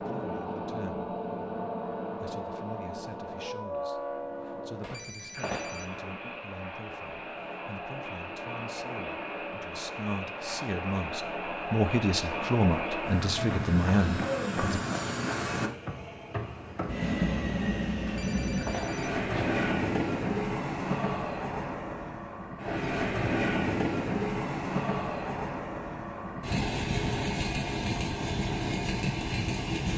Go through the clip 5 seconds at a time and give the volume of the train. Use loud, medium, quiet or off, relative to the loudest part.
medium, medium, loud, loud, loud, loud.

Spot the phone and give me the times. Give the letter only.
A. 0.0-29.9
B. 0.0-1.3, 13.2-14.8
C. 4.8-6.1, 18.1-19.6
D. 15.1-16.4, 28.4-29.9
C.